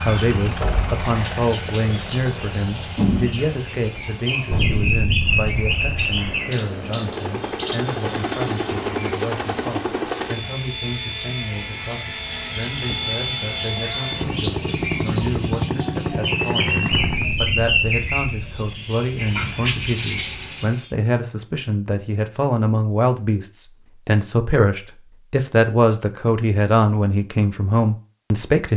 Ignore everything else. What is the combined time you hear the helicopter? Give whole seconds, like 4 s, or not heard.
17 s.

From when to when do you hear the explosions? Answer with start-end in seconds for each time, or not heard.
4.5-6.3, 16.9-18.7.